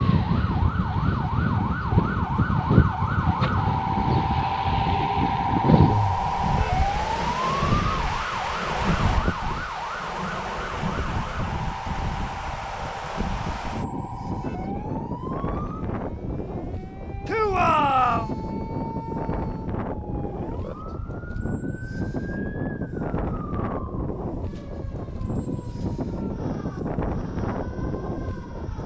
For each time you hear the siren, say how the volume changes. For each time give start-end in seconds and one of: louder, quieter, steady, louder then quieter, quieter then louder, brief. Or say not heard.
0.0-28.8 quieter.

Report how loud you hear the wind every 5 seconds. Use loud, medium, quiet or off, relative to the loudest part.
loud, loud, medium, medium, medium, medium.